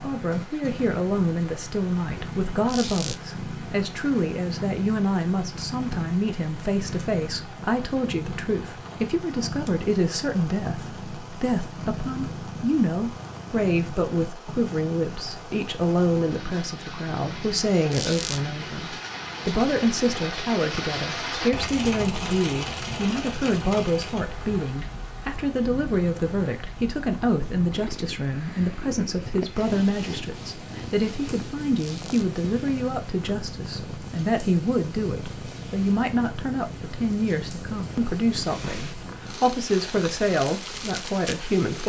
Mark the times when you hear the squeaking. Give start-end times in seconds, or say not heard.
2.6-3.2, 17.9-18.4, 31.8-32.3.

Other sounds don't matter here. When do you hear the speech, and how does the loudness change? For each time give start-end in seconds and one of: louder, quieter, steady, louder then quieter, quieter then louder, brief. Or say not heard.
0.0-41.8 steady.